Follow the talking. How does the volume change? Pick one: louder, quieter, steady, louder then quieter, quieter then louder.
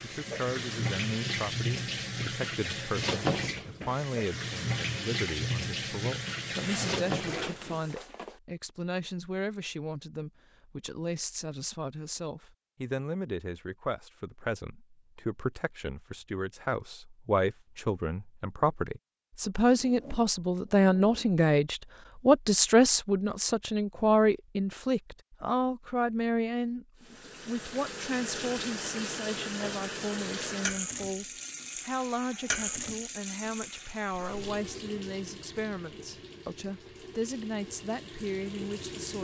louder then quieter.